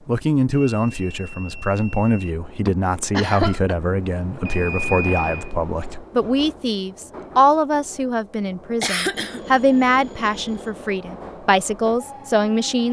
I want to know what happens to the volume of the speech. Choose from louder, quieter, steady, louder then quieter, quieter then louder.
steady.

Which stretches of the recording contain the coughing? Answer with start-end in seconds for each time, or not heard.
2.6-3.8, 8.8-9.4.